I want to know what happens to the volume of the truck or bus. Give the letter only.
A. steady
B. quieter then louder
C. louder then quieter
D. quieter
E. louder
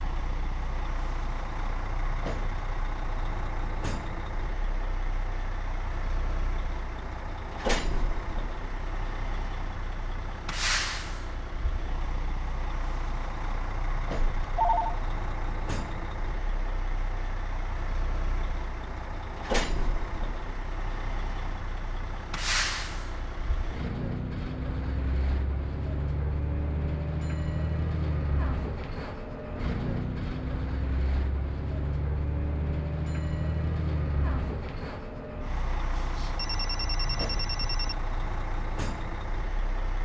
A.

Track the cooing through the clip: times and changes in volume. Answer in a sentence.
You can't hear the cooing here.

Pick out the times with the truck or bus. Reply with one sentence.
You can hear the truck or bus from 0.0 to 40.0 s.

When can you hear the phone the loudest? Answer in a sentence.
The loudest moment of the phone is at 15 seconds.